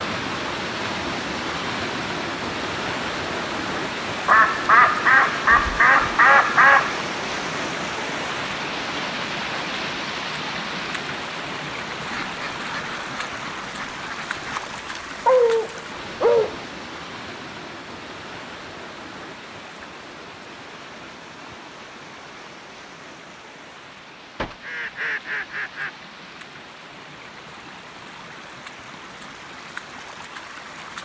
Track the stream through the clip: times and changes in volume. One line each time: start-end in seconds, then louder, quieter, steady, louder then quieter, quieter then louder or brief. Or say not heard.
0.0-30.9 quieter.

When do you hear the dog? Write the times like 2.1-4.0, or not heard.
14.3-16.6.